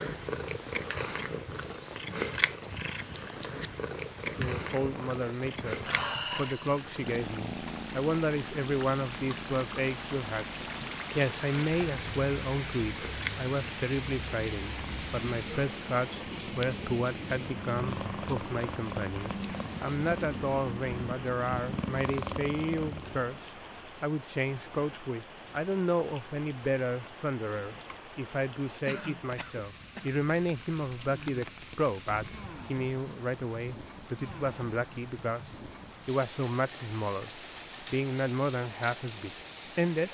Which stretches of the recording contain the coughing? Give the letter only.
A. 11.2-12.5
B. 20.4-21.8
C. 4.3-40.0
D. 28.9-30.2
D.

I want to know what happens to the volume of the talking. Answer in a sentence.
The loudness of the talking stays about the same.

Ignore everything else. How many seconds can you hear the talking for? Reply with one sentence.
The talking can be heard for 36 seconds in total.